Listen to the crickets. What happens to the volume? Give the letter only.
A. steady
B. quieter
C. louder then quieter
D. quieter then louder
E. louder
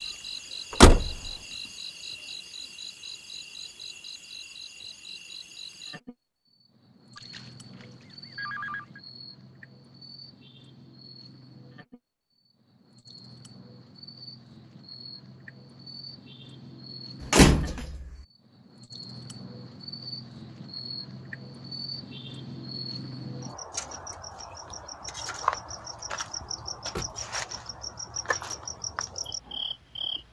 D.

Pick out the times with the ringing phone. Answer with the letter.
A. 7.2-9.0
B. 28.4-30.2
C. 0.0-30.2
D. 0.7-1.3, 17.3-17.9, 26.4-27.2
A.